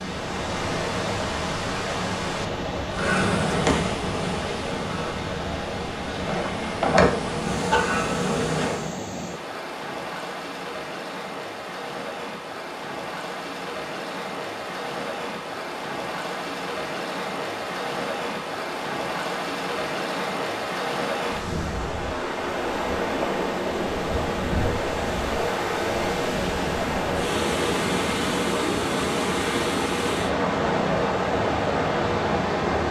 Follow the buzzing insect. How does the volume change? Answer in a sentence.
The loudness of the buzzing insect goes down, then up.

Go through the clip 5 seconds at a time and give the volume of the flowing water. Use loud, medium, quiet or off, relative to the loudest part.
medium, medium, medium, medium, loud, loud, loud.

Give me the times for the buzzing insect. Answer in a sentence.
The buzzing insect can be heard from 2.9 to 8.9 s.